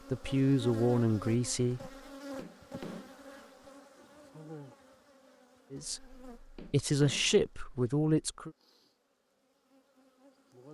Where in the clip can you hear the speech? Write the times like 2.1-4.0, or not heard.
0.1-1.9, 5.7-8.5.